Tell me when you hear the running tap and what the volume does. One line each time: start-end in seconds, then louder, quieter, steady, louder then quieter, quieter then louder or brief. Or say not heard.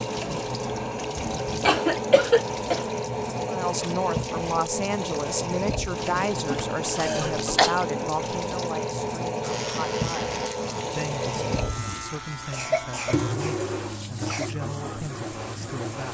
0.0-16.0 steady.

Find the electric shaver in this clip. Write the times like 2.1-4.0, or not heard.
9.4-13.3.